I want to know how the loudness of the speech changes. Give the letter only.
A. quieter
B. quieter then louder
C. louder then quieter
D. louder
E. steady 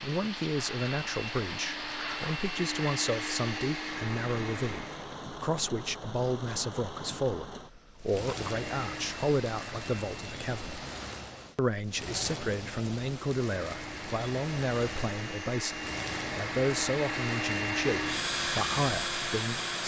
E.